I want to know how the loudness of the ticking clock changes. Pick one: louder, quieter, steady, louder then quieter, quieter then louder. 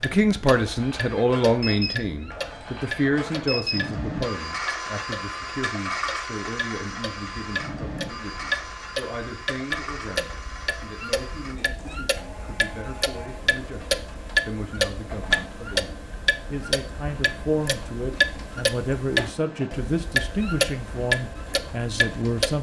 louder.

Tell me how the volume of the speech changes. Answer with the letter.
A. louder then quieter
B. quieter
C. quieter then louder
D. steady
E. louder
C.